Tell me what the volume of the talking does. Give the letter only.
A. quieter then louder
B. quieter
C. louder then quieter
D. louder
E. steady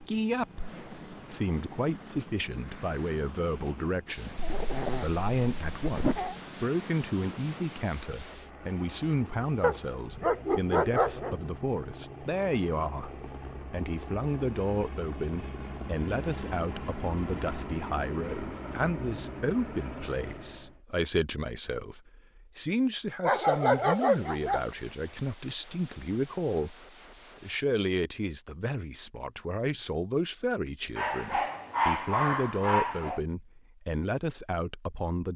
E.